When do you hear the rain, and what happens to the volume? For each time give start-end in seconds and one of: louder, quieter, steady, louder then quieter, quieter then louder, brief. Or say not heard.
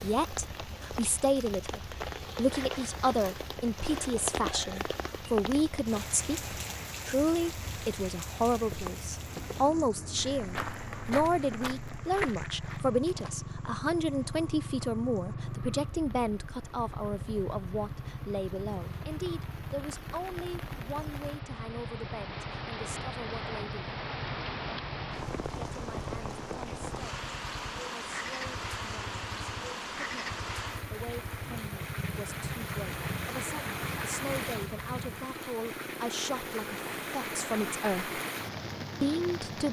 0.0-39.6 quieter then louder.